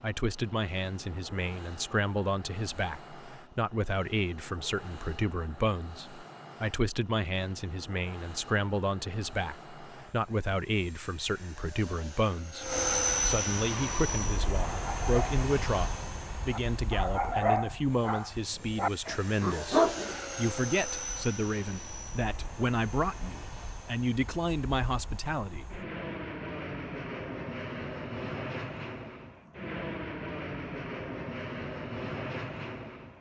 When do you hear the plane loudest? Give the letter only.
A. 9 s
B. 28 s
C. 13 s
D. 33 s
C.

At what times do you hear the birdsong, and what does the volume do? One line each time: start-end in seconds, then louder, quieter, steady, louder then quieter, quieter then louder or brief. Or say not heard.
not heard.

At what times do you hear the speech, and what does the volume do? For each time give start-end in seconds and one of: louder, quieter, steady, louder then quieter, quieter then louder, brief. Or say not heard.
0.0-25.8 steady.